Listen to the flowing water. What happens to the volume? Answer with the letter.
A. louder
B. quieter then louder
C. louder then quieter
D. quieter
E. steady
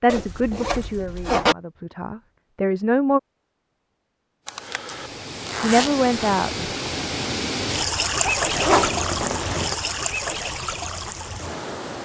C.